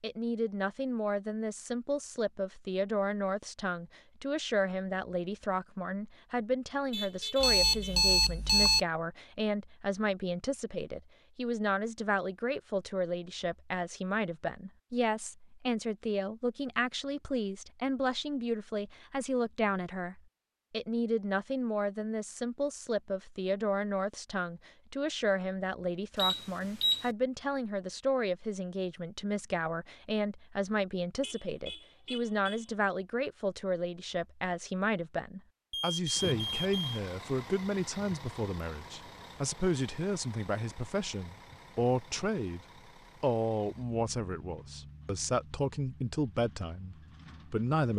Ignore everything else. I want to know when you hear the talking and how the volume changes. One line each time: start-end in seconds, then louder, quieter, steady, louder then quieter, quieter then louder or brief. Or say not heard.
0.0-47.9 steady.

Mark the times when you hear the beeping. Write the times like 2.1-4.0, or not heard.
7.4-8.8, 26.1-27.1, 35.7-37.0.